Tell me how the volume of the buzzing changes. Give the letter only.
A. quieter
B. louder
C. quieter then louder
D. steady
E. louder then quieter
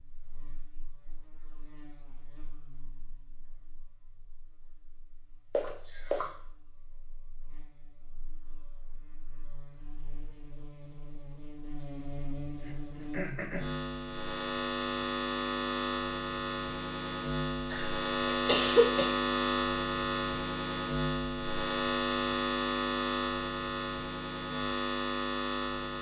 B.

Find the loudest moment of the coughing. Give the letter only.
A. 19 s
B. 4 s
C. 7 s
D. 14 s
A.